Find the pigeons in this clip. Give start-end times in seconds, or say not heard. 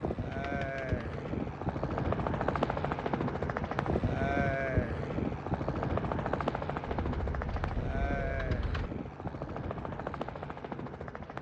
0.3-1.1, 6.9-8.9.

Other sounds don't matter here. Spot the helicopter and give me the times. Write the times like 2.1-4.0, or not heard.
0.0-11.3.